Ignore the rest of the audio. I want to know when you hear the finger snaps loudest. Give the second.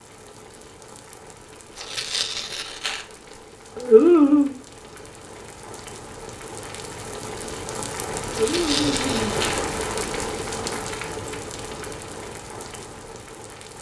4 s.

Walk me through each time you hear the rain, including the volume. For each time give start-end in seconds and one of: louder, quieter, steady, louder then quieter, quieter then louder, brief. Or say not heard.
0.0-13.7 louder then quieter.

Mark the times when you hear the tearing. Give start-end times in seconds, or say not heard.
1.8-3.4, 8.3-9.6.